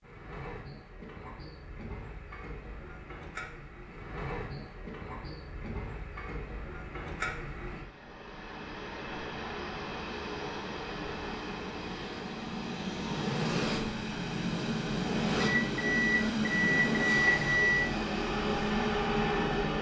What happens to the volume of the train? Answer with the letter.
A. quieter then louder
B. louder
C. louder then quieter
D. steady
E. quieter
B.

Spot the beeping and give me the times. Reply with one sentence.
The beeping can be heard from 15.4 to 17.9 s.